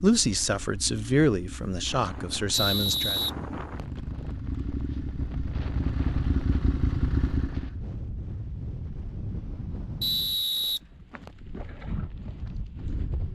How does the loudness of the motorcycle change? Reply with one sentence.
The loudness of the motorcycle goes up.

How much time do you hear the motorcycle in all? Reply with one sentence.
The motorcycle can be heard for 8 seconds in total.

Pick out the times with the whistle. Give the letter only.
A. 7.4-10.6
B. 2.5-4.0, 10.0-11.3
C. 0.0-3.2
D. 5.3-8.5
B.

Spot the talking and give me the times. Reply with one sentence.
You can hear the talking from 0.0 to 3.2 s.